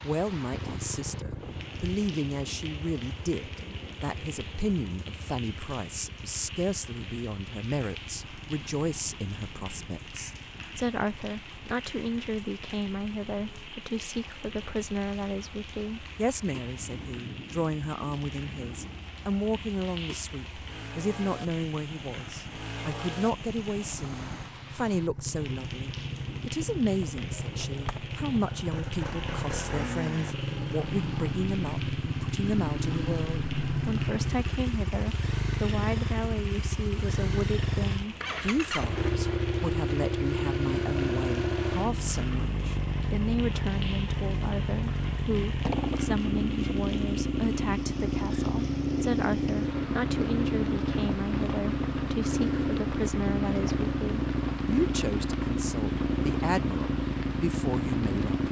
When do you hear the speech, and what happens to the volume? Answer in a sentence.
The speech can be heard from 0.0 to 58.4 s, at a steady volume.